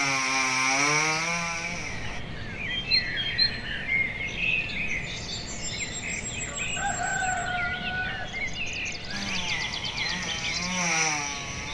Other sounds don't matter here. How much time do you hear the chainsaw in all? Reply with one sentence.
The chainsaw can be heard for 5 seconds in total.